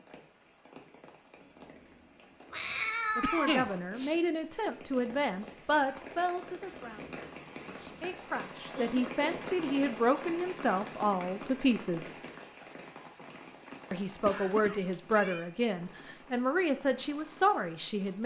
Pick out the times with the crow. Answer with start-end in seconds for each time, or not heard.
not heard.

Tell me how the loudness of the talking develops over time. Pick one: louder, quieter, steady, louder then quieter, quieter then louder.
steady.